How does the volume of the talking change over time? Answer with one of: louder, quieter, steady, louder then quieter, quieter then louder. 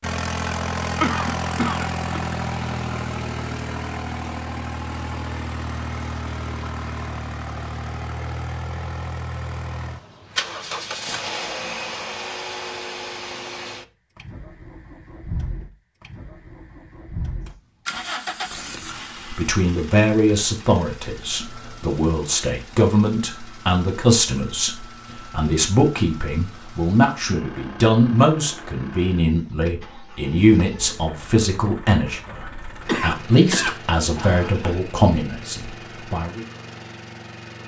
steady.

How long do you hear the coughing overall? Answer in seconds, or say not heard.
3 s.